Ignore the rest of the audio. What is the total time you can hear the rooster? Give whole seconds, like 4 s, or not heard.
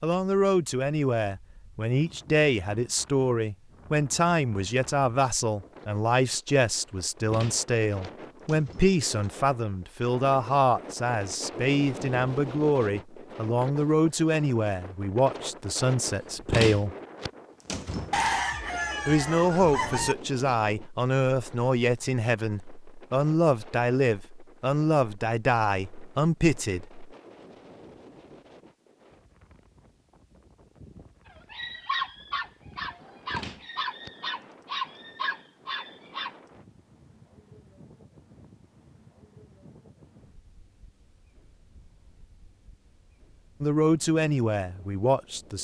2 s.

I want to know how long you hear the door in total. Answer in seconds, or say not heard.
5 s.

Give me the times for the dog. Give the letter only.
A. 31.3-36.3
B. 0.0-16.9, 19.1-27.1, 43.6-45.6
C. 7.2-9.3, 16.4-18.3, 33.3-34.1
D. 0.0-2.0
A.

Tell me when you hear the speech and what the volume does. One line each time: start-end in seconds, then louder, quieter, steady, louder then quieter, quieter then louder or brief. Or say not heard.
0.0-16.9 steady
19.1-27.1 steady
43.6-45.6 brief.